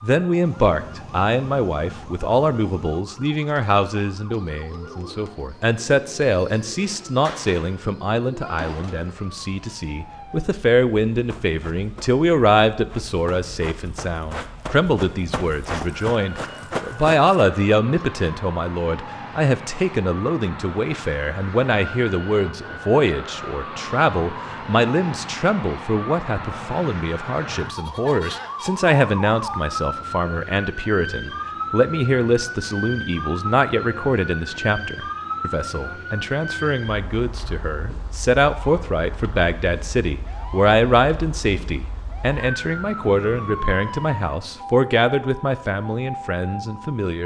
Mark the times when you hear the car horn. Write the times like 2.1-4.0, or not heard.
not heard.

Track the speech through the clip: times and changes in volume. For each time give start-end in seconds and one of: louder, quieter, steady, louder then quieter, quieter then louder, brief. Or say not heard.
0.0-47.2 steady.